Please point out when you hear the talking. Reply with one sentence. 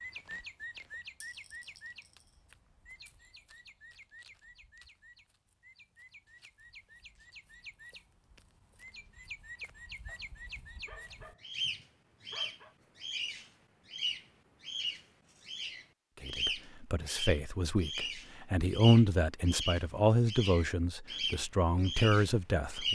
You can hear the talking from 16.2 to 22.8 s.